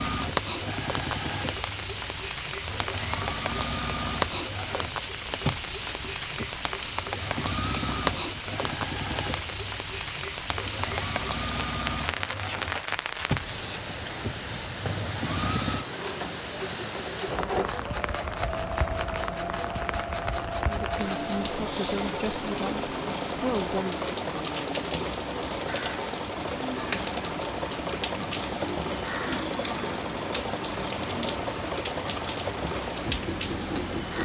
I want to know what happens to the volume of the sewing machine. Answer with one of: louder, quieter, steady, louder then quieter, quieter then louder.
steady.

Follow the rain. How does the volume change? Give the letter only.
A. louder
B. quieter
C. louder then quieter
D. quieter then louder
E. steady
E.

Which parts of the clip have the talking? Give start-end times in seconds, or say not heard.
20.6-24.0.